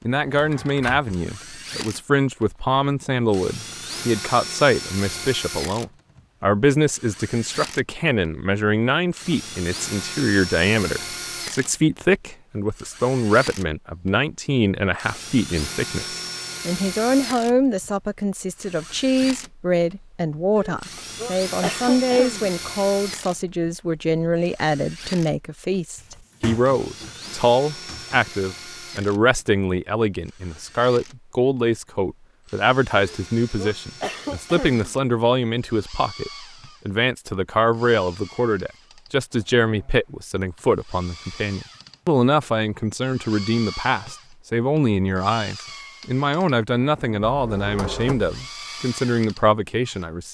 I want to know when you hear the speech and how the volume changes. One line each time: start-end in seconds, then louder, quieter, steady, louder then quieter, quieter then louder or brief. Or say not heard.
0.0-50.3 steady.